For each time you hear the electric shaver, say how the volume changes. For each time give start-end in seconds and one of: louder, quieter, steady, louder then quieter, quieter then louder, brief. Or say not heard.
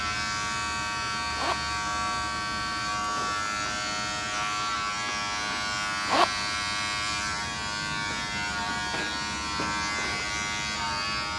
0.0-11.3 steady.